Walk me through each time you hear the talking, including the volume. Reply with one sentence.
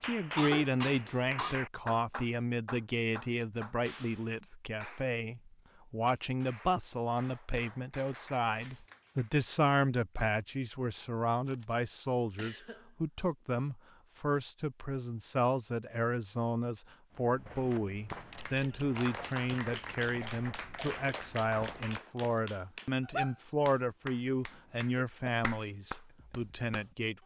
The talking can be heard from 0.0 to 27.2 s, at a steady volume.